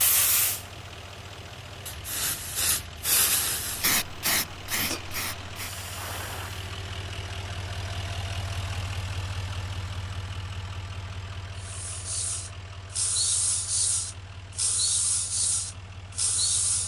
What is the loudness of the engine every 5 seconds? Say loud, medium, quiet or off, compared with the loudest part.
medium, loud, medium, medium.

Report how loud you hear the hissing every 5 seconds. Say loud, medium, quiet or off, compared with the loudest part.
loud, medium, loud, loud.